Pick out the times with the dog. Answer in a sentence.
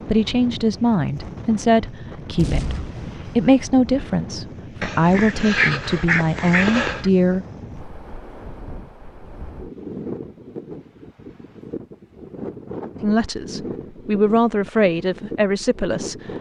You can hear the dog from 4.8 to 7.1 s.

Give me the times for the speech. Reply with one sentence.
You can hear the speech from 0.1 to 7.5 s and from 13.0 to 16.1 s.